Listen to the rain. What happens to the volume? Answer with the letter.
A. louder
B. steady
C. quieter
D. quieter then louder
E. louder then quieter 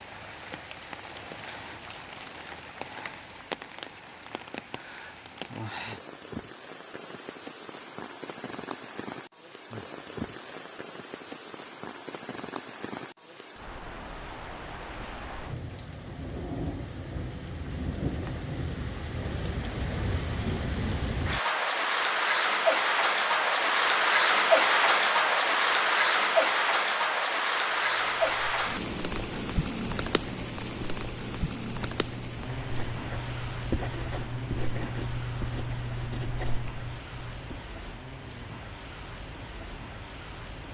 E.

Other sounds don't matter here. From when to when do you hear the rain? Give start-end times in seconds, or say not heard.
0.0-40.6.